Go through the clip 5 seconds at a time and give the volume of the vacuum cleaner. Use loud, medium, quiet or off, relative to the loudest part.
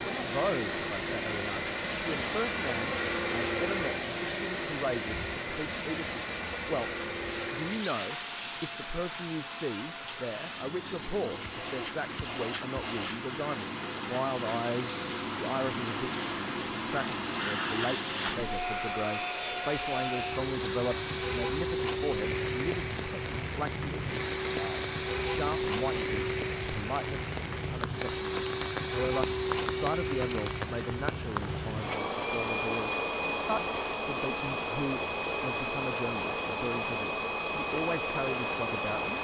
loud, medium, medium, loud, loud, loud, loud, loud.